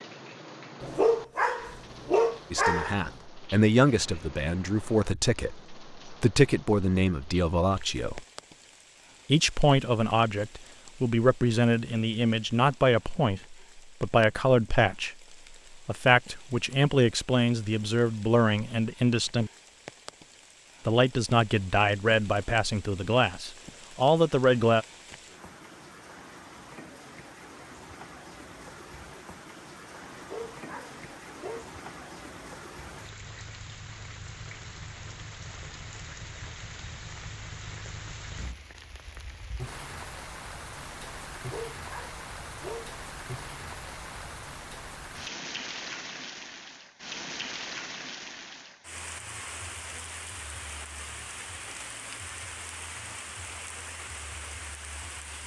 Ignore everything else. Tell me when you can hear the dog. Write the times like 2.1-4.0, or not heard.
0.8-3.1, 30.1-31.6, 41.4-43.0.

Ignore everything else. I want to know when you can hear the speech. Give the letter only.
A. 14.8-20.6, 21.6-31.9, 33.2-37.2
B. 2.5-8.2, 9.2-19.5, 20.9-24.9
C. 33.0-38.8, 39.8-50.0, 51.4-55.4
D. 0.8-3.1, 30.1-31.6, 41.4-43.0
B.